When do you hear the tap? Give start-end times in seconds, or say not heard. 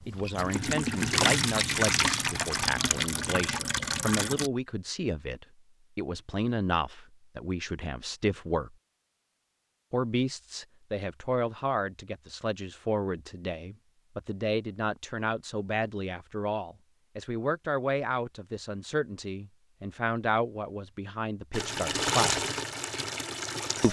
0.1-4.5, 21.5-23.8.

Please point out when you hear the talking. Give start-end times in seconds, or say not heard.
0.1-8.8, 9.9-22.6.